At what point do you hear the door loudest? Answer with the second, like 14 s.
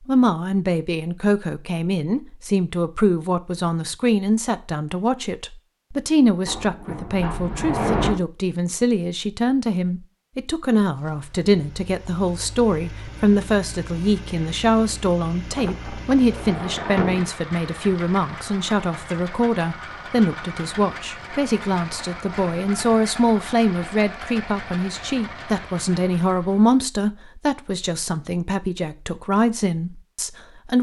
8 s.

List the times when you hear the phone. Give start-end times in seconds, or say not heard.
not heard.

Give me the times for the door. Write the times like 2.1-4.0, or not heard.
6.5-8.2, 15.5-17.3.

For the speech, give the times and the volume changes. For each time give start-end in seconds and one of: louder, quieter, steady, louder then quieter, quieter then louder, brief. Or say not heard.
0.1-30.7 steady.